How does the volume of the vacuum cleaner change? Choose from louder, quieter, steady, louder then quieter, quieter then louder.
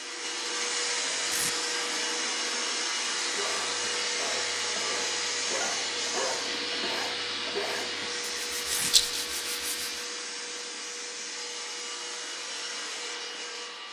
quieter.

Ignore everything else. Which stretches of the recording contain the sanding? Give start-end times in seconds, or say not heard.
3.2-10.1.